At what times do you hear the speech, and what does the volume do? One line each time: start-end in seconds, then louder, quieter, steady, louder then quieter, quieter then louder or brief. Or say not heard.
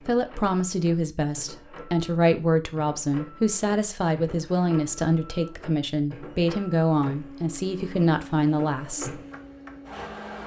0.1-9.2 steady.